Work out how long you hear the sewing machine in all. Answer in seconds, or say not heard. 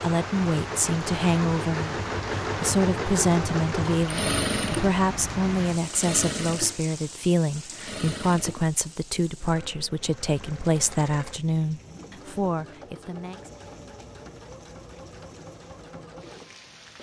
17 s.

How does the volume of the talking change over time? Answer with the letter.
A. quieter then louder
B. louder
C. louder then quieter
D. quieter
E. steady
E.